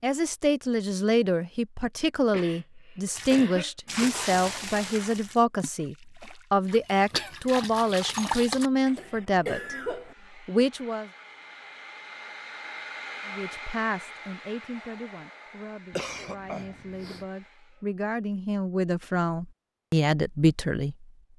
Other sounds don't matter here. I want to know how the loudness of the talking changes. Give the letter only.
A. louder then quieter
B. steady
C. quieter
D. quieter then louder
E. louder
D.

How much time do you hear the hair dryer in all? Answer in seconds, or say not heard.
8 s.